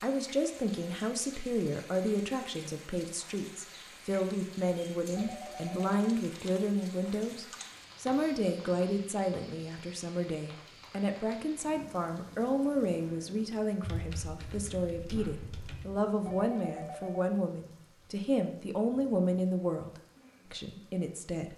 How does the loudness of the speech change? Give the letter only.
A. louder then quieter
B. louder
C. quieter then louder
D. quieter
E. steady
E.